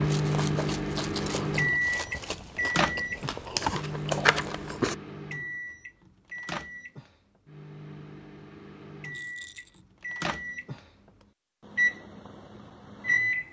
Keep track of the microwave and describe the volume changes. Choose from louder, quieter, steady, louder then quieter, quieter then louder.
quieter then louder.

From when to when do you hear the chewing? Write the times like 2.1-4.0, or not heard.
0.1-5.0.